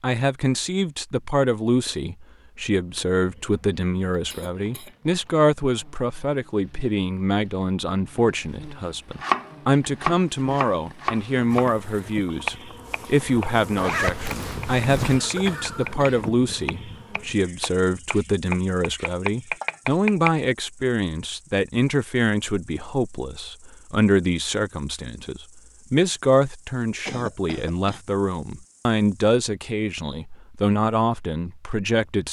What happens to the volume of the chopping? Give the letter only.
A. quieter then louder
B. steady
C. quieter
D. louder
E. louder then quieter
A.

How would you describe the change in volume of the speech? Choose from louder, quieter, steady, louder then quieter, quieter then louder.
steady.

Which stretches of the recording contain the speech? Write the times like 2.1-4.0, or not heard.
0.0-32.2.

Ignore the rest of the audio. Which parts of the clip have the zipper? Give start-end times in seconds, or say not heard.
13.8-15.2.